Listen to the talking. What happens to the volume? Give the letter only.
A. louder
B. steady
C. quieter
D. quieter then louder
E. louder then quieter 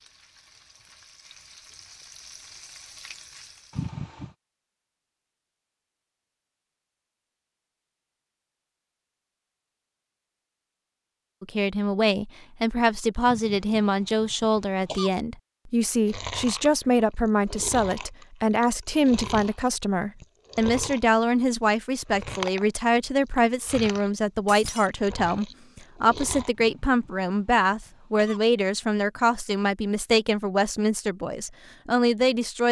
B.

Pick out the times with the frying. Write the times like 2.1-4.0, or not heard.
0.0-4.0.